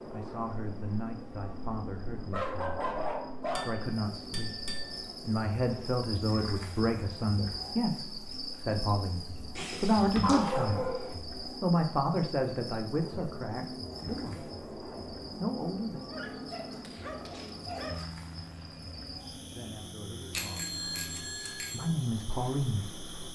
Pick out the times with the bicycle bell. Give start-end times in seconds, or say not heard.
3.5-5.0, 9.6-10.7, 20.3-21.9.